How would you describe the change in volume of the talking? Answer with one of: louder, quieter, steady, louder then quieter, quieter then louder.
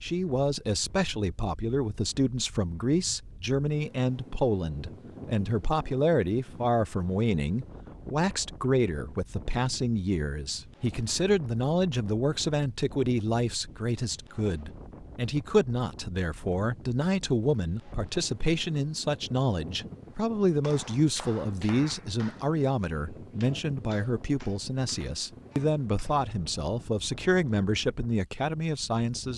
steady.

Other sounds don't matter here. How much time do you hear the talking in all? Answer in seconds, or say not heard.
29 s.